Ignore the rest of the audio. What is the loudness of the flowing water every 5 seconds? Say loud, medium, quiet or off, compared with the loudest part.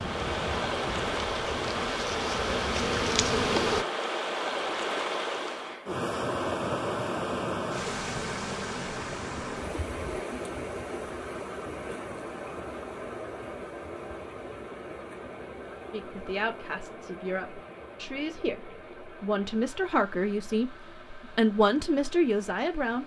loud, loud, medium, quiet, quiet.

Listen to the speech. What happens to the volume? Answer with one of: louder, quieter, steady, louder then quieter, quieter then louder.
louder.